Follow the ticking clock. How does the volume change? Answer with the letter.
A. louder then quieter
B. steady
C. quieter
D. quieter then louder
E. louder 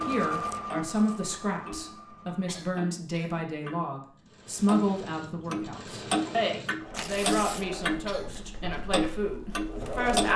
D.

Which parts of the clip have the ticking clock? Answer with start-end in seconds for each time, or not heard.
0.0-4.0, 4.7-10.3.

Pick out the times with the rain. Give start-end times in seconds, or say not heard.
not heard.